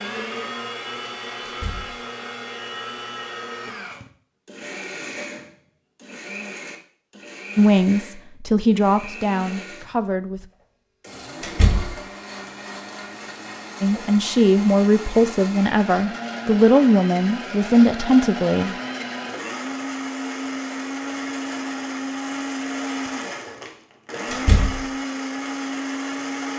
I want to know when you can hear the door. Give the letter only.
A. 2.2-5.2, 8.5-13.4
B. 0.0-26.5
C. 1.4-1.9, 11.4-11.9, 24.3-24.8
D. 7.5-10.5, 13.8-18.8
C.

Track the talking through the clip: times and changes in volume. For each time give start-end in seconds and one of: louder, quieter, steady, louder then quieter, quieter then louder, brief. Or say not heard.
7.5-10.5 brief
13.8-18.8 steady.